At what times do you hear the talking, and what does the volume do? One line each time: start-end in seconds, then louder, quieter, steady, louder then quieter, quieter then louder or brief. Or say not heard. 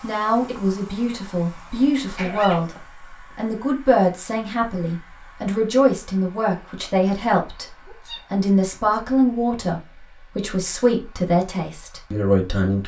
0.0-12.8 steady.